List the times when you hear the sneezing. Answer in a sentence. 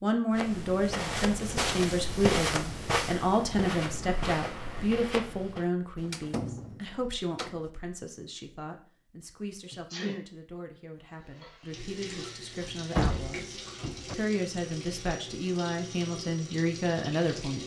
The sneezing can be heard from 4.0 to 4.9 s and from 9.7 to 10.2 s.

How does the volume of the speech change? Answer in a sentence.
The loudness of the speech goes down, then up.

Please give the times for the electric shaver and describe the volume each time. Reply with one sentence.
You can't hear the electric shaver here.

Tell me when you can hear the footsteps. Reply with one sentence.
The footsteps can be heard from 0.3 to 5.7 s.